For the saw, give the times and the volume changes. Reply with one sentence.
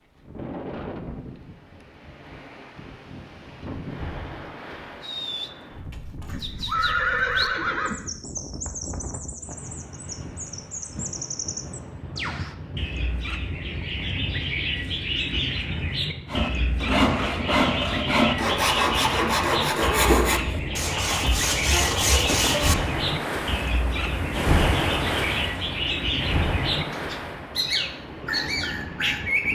The saw can be heard from 16.2 to 22.8 s, at a steady volume.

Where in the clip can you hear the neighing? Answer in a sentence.
You can hear the neighing from 6.2 to 8.0 s and from 19.9 to 20.6 s.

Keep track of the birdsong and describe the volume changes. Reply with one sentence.
The volume of the birdsong goes up.